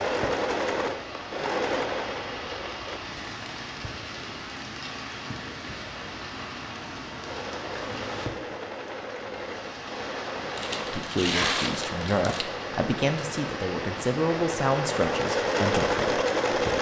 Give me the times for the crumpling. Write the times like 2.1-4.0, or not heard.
10.6-12.4.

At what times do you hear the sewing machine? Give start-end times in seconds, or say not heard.
0.0-3.0, 7.2-16.7.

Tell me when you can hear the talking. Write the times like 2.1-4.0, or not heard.
10.8-16.7.